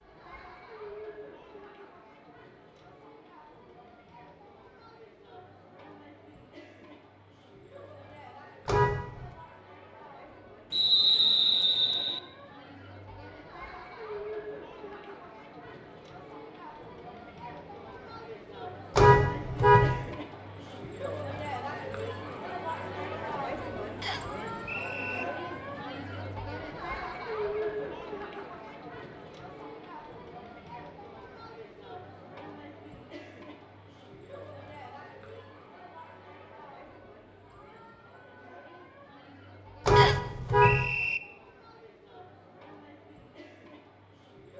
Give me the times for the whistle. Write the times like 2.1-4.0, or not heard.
10.7-12.2, 24.0-25.2, 40.0-41.2.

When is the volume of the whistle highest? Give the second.
11 s.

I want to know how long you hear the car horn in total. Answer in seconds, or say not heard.
3 s.